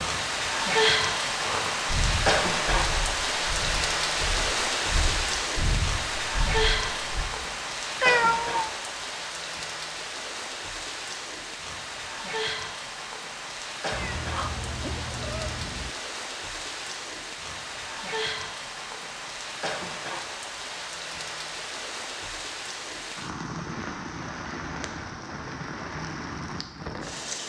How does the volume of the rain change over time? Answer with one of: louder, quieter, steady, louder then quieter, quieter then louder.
quieter.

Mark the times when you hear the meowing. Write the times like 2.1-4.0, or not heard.
8.0-8.7, 13.9-15.9.